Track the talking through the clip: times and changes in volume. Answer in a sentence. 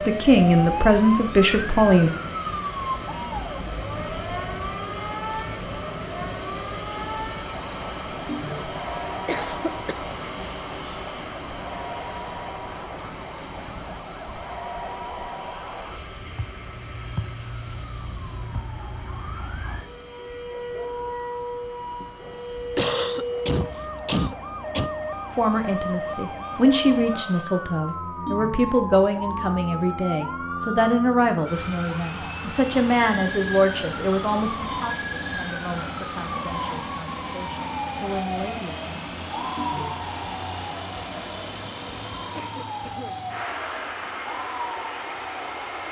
You can hear the talking briefly from 0.1 to 2.1 s; and from 25.4 to 39.2 s, getting quieter.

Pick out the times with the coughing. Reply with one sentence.
You can hear the coughing from 9.2 to 10.0 s, from 22.3 to 24.9 s and from 42.4 to 43.3 s.